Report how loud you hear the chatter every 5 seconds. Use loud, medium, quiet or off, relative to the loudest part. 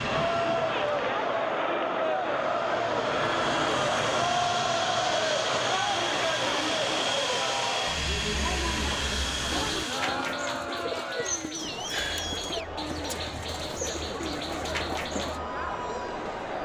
loud, loud, medium, medium.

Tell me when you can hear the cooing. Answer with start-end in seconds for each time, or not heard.
9.5-15.4.